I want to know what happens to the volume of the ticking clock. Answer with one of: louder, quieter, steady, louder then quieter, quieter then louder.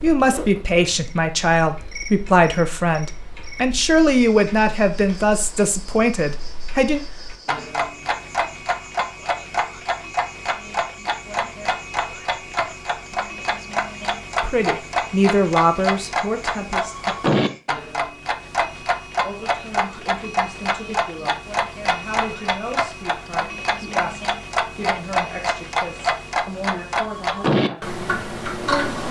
louder.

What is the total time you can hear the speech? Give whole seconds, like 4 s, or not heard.
20 s.